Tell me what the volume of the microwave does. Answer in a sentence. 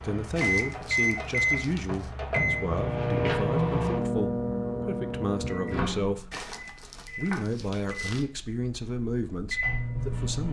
The loudness of the microwave goes down, then up.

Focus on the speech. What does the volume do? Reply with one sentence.
The volume of the speech stays about the same.